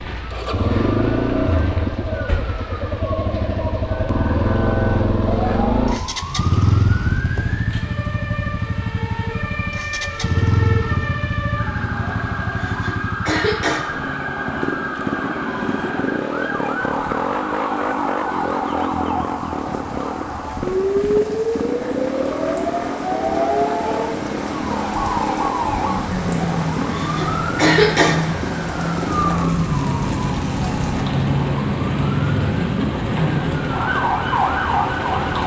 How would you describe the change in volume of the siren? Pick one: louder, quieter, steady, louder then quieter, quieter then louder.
louder.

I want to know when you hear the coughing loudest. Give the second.
28 s.